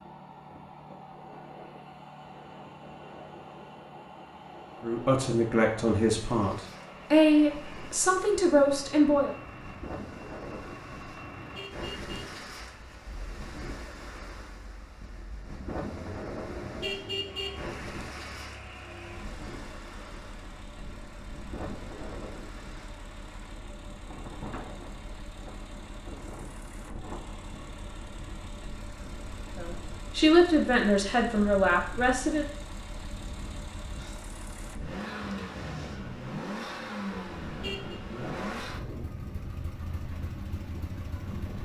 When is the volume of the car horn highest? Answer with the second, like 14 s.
17 s.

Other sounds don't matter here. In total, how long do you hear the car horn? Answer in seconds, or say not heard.
3 s.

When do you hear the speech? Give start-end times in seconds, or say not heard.
4.8-9.3, 29.6-32.5.